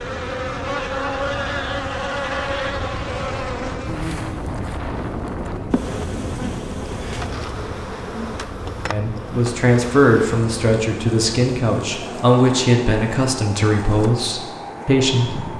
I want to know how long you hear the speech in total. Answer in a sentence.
You can hear the speech for 7 seconds altogether.